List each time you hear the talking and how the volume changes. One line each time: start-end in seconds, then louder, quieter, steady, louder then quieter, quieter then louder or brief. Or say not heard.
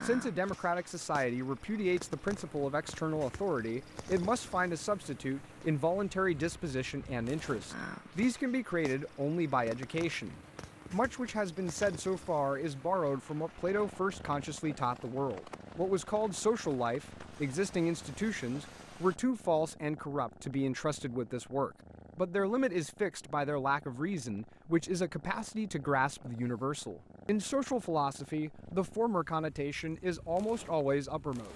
0.0-31.5 steady.